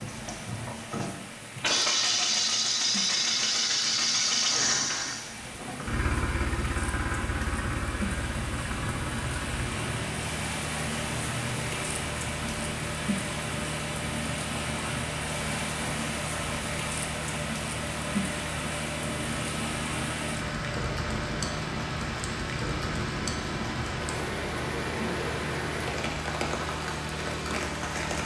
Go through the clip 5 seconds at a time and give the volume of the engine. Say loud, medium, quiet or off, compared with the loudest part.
loud, medium, medium, medium, medium, medium.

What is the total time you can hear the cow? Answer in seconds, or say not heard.
not heard.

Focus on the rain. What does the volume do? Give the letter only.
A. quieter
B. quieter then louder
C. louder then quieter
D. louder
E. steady
D.